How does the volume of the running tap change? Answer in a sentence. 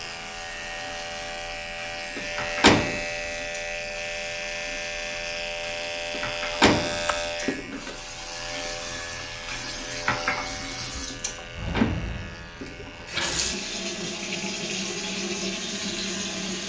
The loudness of the running tap goes up.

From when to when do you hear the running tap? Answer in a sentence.
You can hear the running tap from 0.0 to 16.6 s.